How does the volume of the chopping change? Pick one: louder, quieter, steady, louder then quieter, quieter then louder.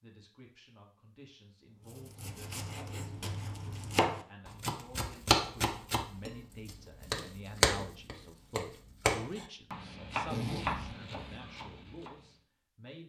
louder then quieter.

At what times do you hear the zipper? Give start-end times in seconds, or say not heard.
10.2-11.4.